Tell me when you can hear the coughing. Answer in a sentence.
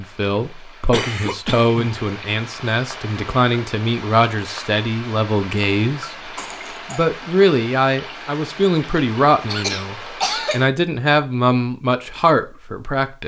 You can hear the coughing from 0.9 to 1.9 s, from 6.3 to 7.0 s and from 9.4 to 10.7 s.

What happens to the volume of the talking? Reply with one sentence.
The loudness of the talking stays about the same.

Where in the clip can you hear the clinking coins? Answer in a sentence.
You can't hear the clinking coins here.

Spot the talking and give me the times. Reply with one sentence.
The talking can be heard from 0.0 to 6.3 s and from 6.9 to 13.2 s.